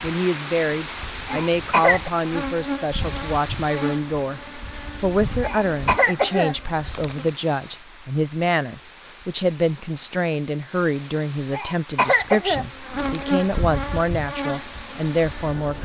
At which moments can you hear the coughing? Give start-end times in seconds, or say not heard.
1.2-2.1, 5.4-7.3, 11.5-13.4.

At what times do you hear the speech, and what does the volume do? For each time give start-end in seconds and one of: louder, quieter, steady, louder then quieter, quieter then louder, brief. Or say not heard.
0.0-15.8 steady.